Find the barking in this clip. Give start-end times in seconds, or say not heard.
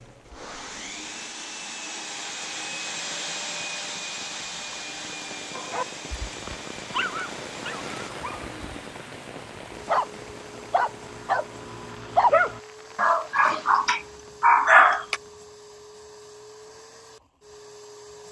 5.5-15.2.